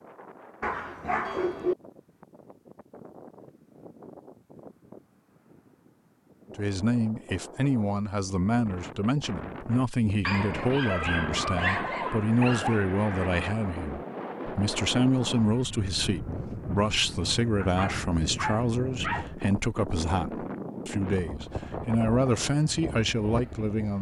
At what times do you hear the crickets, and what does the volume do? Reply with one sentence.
The crickets can't be heard in this clip.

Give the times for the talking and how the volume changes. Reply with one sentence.
The talking can be heard from 6.5 to 23.9 s, at a steady volume.